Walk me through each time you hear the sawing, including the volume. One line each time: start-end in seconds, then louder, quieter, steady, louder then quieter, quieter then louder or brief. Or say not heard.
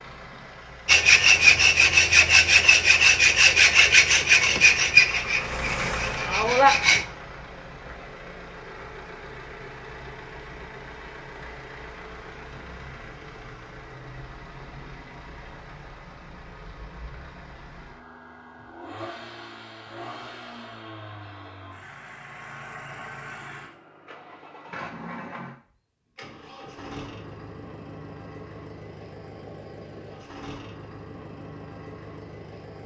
0.8-7.0 quieter.